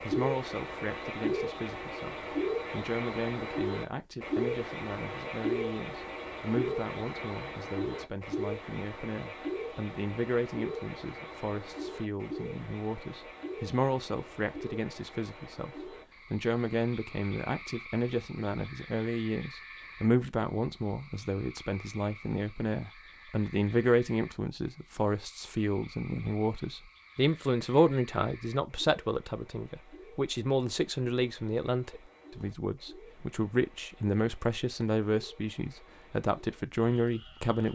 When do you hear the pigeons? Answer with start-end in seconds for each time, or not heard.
not heard.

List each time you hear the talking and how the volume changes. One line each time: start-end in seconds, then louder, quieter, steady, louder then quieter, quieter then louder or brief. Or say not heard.
0.0-37.7 louder.